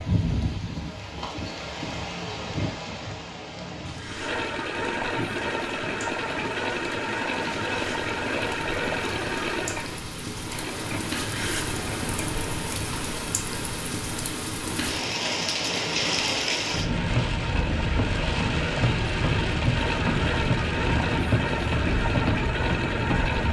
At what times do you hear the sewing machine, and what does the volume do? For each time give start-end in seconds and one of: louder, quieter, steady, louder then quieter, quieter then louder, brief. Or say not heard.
4.0-23.4 quieter then louder.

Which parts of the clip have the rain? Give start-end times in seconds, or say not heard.
0.0-23.4.